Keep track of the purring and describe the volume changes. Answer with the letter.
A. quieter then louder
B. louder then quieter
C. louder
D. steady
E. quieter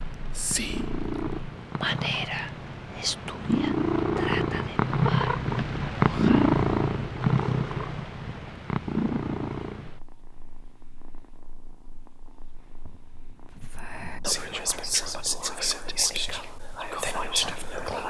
B.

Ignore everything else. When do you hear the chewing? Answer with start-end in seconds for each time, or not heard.
not heard.